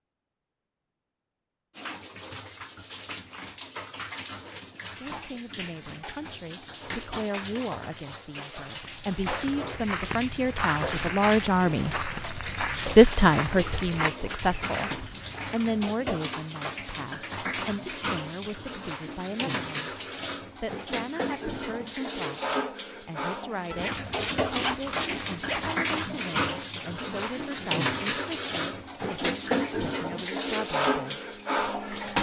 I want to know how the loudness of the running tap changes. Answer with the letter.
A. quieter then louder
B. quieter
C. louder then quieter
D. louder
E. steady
D.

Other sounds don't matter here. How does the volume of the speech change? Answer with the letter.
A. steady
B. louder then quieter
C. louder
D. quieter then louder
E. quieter
B.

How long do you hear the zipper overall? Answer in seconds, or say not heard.
2 s.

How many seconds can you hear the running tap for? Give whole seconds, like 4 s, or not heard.
30 s.